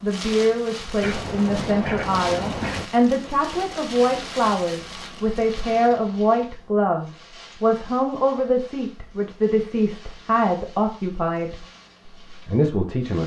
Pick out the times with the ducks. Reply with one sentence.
The ducks can be heard from 1.0 to 2.9 s.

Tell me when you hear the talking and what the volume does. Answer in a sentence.
The talking can be heard from 0.0 to 11.7 s, at a steady volume; and briefly from 12.3 to 13.2 s.